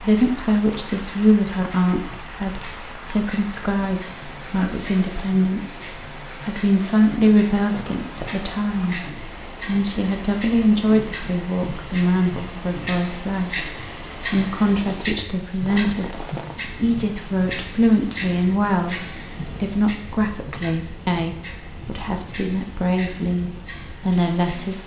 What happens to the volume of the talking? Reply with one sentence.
The loudness of the talking stays about the same.